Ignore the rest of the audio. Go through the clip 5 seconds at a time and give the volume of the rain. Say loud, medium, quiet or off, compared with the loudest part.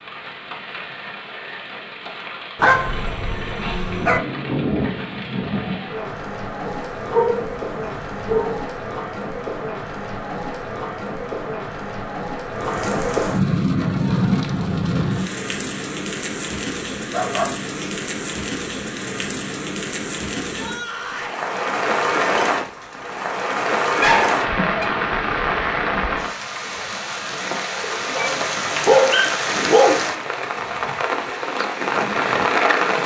medium, medium, loud, medium, loud, loud, loud.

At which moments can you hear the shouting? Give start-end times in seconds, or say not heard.
20.5-21.4.